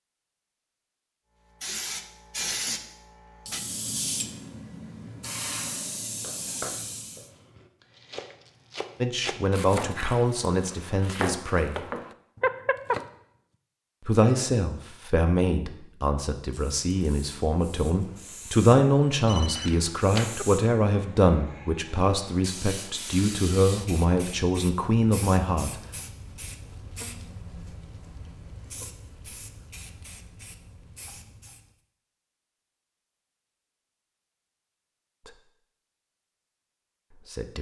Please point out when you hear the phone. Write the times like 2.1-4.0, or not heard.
12.4-13.0, 19.2-20.4.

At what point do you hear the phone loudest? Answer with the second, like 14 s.
13 s.